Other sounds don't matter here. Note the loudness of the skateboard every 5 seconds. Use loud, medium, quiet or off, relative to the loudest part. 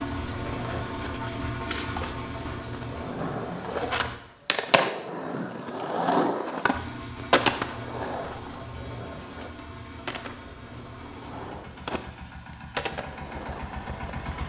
loud, loud, medium.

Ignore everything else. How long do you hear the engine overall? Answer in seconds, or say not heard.
12 s.